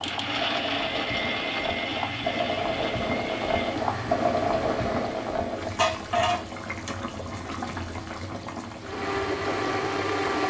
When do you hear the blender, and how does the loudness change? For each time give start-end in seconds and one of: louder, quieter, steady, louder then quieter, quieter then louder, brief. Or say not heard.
0.0-5.1 quieter
8.8-10.4 brief.